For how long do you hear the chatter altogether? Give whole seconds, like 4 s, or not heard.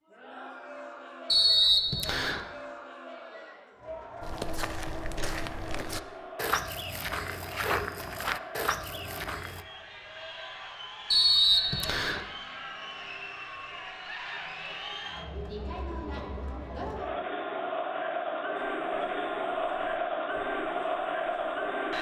22 s.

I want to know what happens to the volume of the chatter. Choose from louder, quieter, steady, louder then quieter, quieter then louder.
louder.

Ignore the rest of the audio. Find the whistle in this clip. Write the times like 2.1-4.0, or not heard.
1.3-2.4, 11.1-12.2.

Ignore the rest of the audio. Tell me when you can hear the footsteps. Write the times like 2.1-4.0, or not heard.
4.2-9.7, 18.6-21.6.